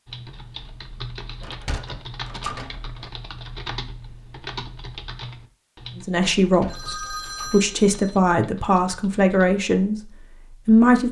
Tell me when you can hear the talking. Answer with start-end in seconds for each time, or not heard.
6.0-11.0.